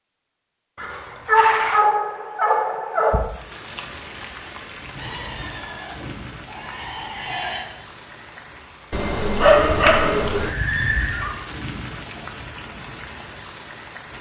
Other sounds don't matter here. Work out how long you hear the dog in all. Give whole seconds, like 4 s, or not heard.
4 s.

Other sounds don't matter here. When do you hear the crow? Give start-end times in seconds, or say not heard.
not heard.